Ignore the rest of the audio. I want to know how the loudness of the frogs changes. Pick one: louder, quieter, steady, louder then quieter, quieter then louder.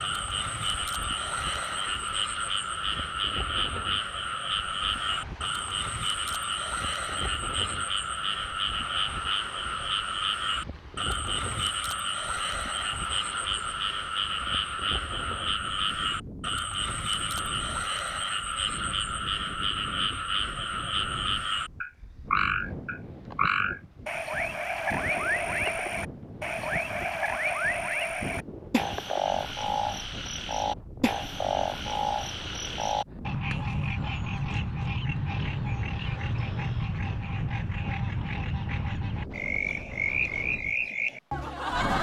steady.